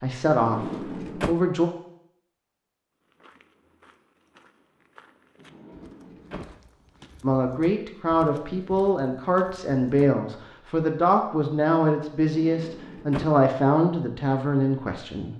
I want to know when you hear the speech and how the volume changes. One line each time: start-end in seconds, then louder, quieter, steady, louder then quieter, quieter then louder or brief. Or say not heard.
0.0-1.7 brief
7.2-15.3 steady.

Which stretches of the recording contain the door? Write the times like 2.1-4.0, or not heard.
0.3-1.4, 5.3-6.5, 12.2-13.4.